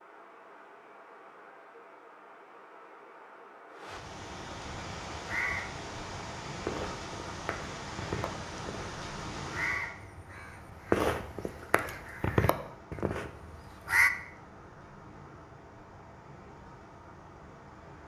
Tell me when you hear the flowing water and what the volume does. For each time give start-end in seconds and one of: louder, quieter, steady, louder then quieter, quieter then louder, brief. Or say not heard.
0.0-18.0 louder then quieter.